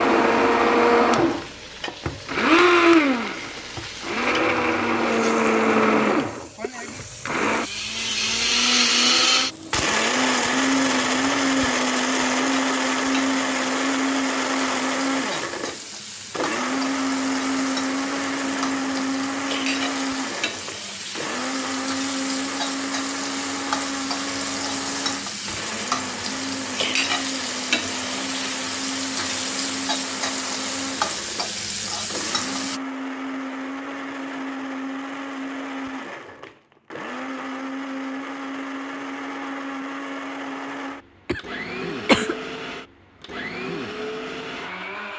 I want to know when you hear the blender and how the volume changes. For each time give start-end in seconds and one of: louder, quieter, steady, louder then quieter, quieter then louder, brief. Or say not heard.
0.0-45.1 quieter.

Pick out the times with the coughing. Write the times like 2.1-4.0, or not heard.
41.2-42.4.